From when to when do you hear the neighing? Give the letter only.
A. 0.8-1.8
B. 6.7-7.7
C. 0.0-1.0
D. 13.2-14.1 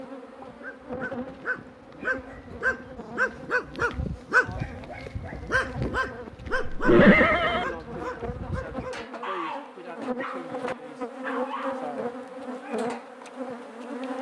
B.